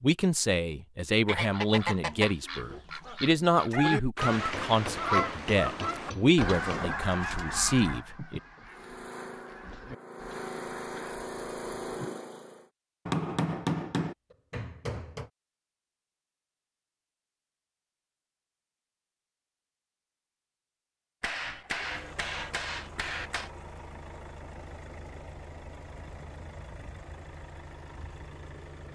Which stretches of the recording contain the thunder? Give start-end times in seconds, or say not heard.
not heard.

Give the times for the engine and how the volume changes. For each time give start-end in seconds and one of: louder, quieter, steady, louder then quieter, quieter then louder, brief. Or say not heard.
8.7-12.7 louder
21.6-28.9 steady.